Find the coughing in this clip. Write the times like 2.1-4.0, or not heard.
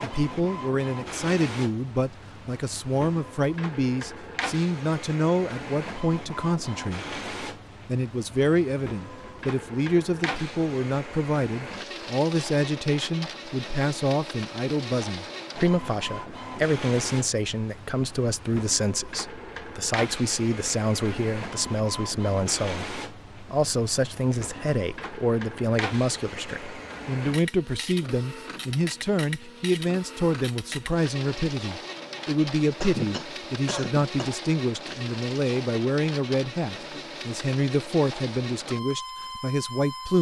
32.8-34.4.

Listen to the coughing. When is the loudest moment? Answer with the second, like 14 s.
33 s.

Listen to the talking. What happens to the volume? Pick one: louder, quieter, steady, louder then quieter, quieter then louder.
steady.